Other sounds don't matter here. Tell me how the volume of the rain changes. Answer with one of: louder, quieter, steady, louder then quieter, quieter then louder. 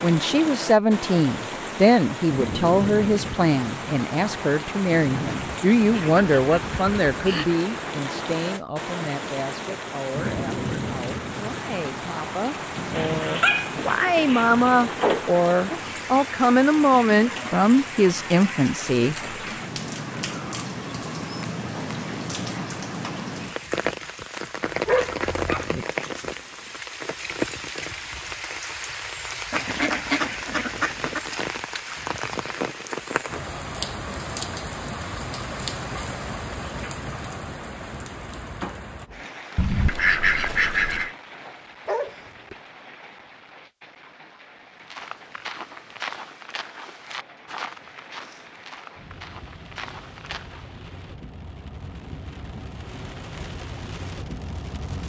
quieter.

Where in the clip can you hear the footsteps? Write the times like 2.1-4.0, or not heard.
44.8-50.7.